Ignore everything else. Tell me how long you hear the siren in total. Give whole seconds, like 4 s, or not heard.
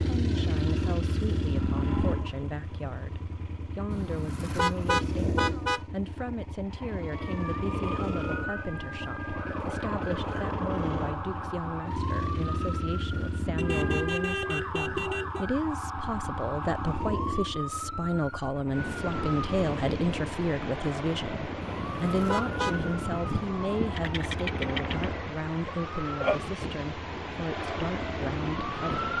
22 s.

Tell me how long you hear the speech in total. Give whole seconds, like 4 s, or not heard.
29 s.